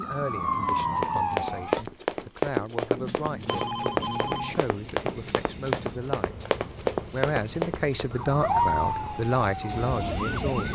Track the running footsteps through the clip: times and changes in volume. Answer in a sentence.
The running footsteps can be heard from 0.5 to 8.2 s, at a steady volume.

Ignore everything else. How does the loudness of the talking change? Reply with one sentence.
The volume of the talking goes up.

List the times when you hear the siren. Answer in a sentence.
The siren can be heard from 0.0 to 1.9 s and from 8.1 to 10.7 s.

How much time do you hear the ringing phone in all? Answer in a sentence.
The ringing phone can be heard for 2 seconds in total.